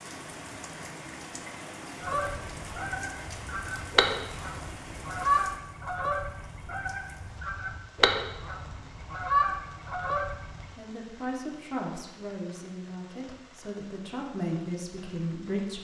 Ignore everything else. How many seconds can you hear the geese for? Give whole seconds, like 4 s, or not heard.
9 s.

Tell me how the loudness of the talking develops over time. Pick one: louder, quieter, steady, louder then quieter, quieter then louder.
quieter then louder.